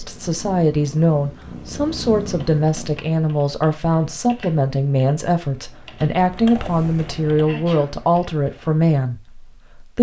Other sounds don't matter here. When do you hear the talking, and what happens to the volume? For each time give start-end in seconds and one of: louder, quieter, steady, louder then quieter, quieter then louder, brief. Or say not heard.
0.0-9.9 steady.